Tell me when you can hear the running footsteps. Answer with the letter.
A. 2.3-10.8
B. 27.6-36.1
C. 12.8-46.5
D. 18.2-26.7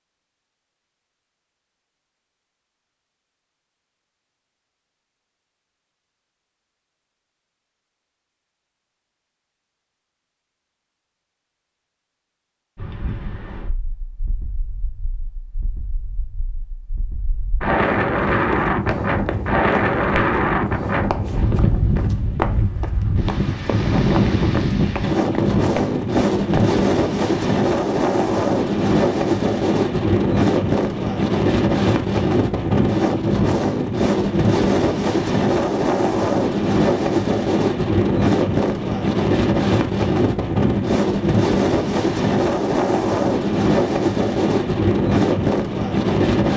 D.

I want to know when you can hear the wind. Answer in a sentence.
The wind can be heard from 12.8 to 46.5 s.